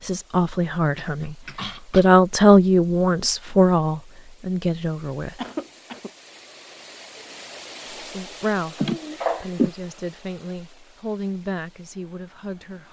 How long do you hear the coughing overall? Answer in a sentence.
The coughing can be heard for 3 seconds in total.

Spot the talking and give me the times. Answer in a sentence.
The talking can be heard from 0.0 to 5.3 s and from 8.0 to 12.8 s.